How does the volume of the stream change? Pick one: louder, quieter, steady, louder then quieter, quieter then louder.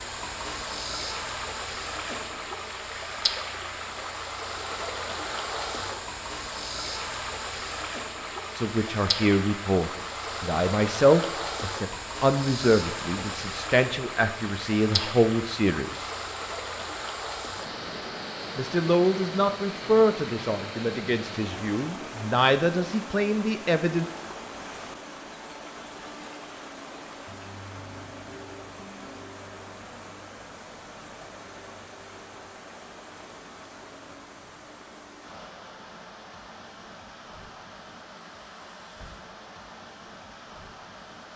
quieter.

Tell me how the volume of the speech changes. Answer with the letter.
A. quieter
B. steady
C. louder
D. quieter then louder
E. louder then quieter
B.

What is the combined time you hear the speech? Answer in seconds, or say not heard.
13 s.